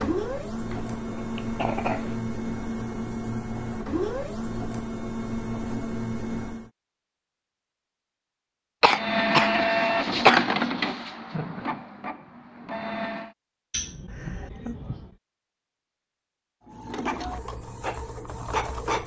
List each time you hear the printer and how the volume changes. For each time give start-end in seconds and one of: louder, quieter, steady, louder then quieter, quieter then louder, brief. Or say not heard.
0.0-6.7 steady
8.9-13.3 quieter
16.6-19.0 brief.